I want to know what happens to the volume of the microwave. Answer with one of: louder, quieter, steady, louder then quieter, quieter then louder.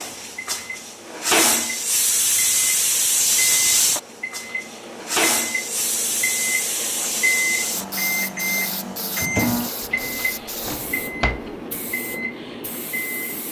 louder then quieter.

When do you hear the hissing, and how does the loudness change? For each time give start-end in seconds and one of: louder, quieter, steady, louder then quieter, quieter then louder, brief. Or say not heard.
0.0-13.4 quieter.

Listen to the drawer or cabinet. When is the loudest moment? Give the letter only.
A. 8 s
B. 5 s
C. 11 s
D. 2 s
C.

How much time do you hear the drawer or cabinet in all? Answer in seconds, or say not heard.
2 s.